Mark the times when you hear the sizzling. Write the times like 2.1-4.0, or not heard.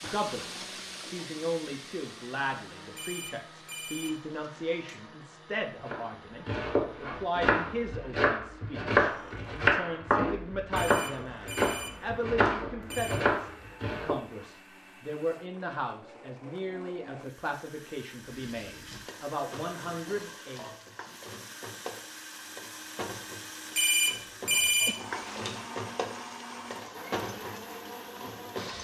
0.0-5.0, 18.2-28.7.